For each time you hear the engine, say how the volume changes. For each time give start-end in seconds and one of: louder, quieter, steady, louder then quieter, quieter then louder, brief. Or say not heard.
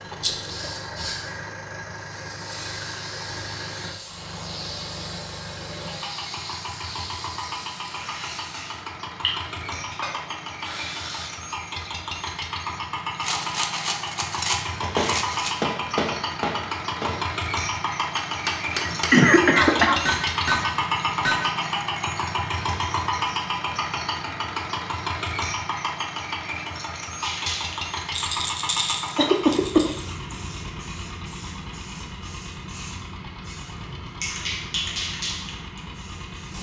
0.0-36.5 louder then quieter.